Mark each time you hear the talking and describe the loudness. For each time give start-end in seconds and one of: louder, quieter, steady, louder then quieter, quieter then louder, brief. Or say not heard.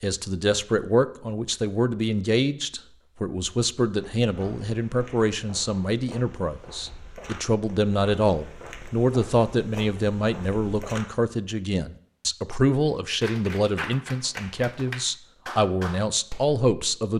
0.0-17.1 steady.